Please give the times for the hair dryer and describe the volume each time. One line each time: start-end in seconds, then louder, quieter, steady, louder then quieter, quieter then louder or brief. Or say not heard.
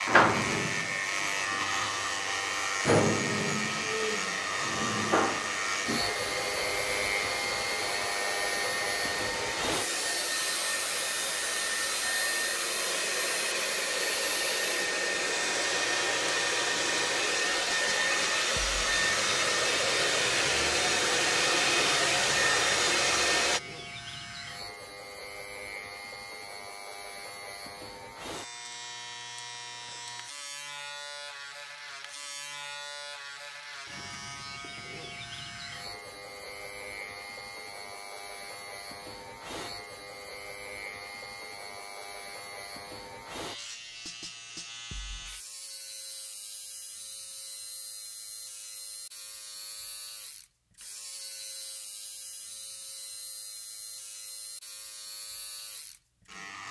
0.0-23.6 louder.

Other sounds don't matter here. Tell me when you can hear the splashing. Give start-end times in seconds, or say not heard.
not heard.